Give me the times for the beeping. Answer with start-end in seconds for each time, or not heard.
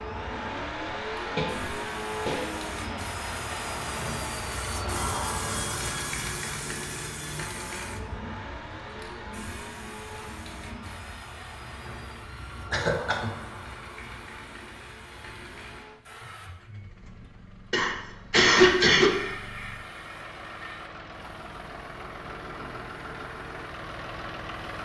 not heard.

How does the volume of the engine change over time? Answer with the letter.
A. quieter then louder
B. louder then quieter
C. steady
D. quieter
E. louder
A.